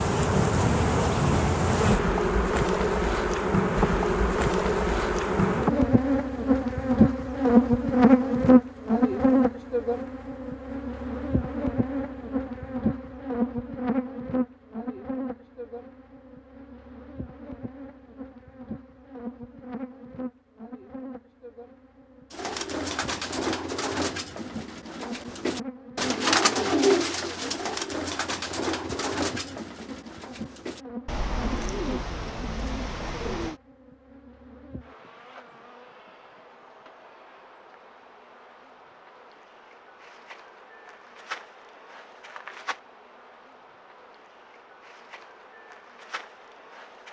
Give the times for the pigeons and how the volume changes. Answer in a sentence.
You can hear the pigeons from 22.3 to 33.6 s, getting louder then quieter.